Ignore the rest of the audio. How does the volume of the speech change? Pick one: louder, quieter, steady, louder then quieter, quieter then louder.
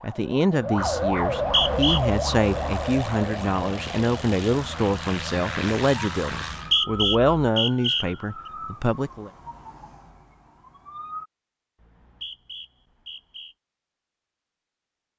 steady.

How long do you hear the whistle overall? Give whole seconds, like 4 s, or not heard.
4 s.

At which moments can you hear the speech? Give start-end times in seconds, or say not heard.
0.0-9.3.